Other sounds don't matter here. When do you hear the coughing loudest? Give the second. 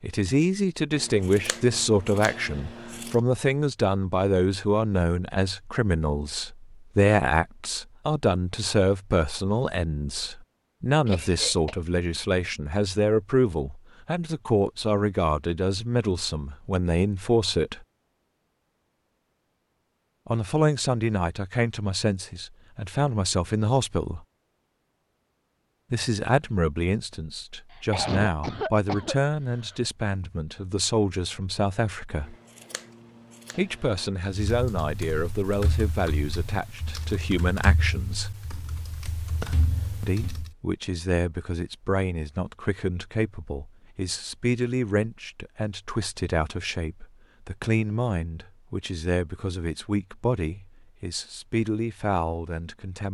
28 s.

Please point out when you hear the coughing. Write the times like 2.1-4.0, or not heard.
11.1-11.8, 27.7-29.9.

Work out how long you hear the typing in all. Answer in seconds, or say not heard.
6 s.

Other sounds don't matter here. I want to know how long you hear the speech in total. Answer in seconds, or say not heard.
46 s.